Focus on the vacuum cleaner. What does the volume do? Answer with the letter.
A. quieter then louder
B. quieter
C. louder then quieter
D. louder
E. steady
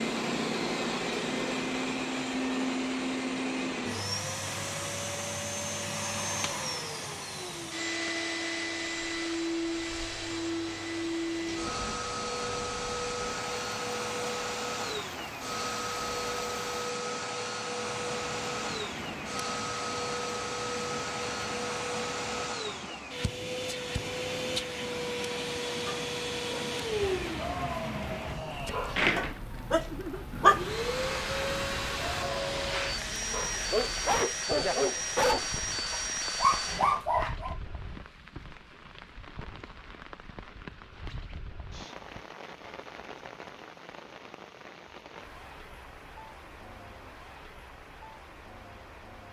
E.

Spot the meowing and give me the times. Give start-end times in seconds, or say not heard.
not heard.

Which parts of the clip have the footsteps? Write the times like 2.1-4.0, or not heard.
not heard.